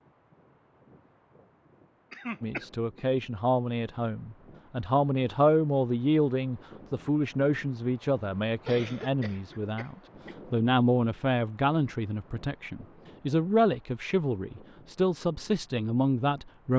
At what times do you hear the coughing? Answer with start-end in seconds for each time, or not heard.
2.1-3.0, 8.7-10.3.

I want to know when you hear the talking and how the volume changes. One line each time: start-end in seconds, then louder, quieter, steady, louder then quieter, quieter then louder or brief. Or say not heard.
2.4-16.7 steady.